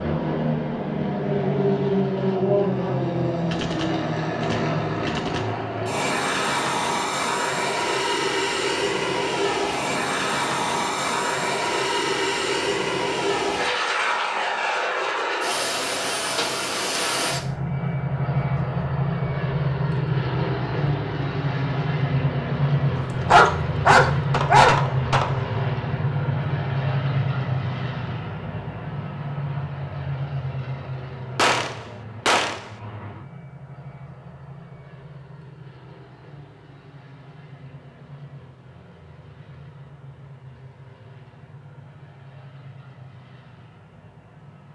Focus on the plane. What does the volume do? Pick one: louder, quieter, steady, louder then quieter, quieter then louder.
quieter.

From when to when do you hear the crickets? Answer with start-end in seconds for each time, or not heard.
not heard.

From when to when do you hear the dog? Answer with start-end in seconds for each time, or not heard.
22.9-24.8.